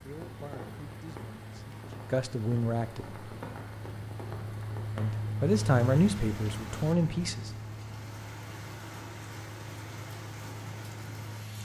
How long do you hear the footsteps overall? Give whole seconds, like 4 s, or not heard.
not heard.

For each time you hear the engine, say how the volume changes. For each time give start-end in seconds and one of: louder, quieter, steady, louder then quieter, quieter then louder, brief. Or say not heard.
0.0-11.6 louder then quieter.